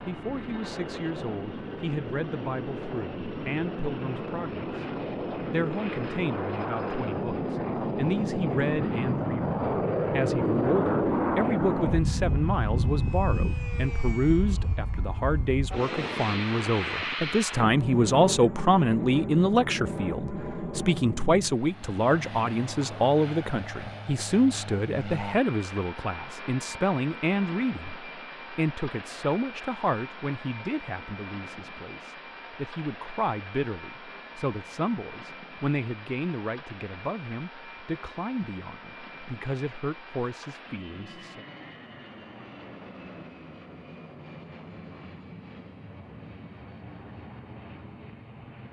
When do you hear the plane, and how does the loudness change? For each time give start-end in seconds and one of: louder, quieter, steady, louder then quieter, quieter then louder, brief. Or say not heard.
0.0-48.6 quieter.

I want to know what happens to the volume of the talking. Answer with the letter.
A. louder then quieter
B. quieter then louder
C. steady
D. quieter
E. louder
A.